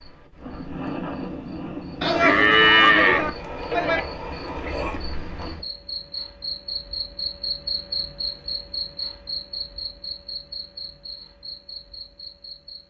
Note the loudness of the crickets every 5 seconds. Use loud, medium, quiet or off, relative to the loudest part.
loud, loud, medium.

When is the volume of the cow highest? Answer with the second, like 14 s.
3 s.